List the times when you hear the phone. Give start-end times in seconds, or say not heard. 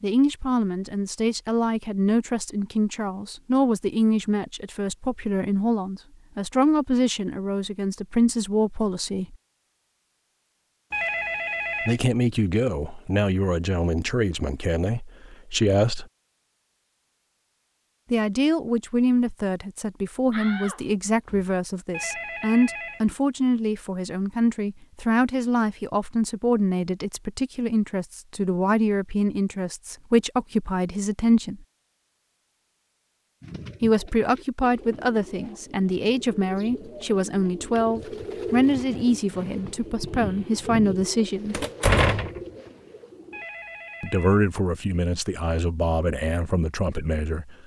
10.9-12.0, 21.9-23.1, 43.3-44.5.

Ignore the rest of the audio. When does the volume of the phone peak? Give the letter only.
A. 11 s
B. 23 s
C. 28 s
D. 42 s
A.